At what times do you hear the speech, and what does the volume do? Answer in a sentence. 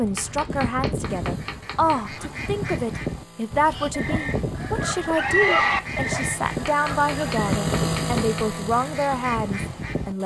You can hear the speech from 0.0 to 10.2 s, at a steady volume.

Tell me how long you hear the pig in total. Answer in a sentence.
You can hear the pig for 4 seconds altogether.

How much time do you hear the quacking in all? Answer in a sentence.
You can hear the quacking for 10 seconds altogether.